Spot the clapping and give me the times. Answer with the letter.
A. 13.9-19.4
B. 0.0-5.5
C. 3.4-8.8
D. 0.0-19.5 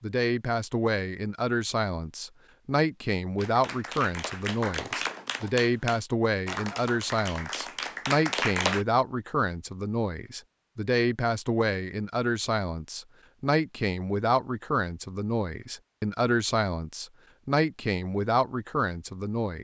C.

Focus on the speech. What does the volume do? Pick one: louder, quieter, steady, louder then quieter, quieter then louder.
steady.